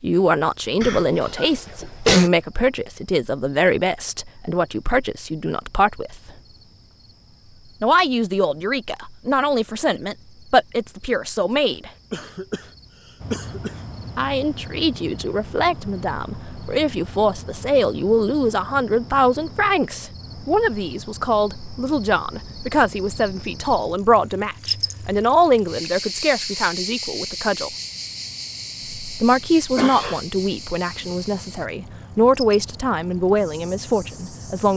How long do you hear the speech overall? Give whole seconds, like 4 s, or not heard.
29 s.